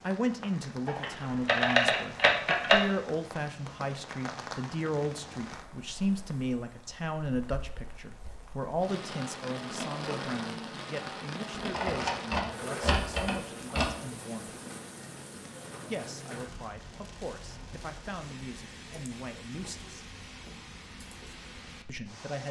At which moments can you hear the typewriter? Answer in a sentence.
The typewriter can be heard from 0.8 to 2.9 s and from 11.7 to 13.9 s.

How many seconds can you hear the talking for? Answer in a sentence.
The talking can be heard for 19 seconds in total.